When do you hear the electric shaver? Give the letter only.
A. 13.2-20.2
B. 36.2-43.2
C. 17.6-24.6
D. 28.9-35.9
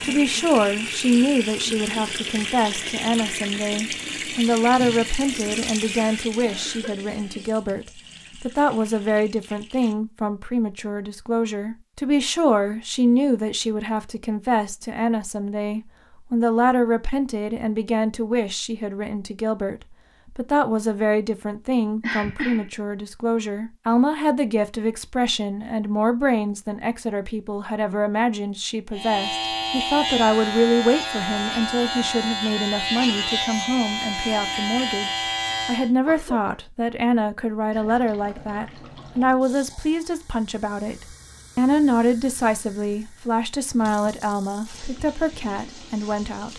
D.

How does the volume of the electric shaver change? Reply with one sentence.
The volume of the electric shaver stays about the same.